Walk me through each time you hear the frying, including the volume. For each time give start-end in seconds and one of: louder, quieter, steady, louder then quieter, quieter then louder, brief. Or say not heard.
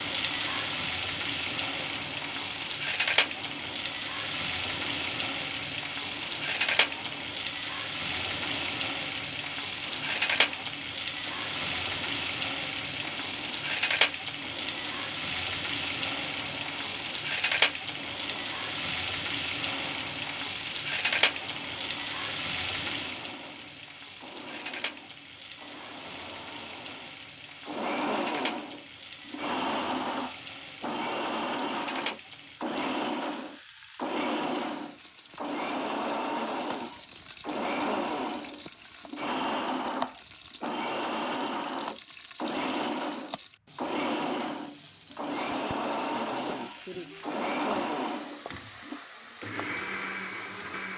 0.0-50.9 quieter.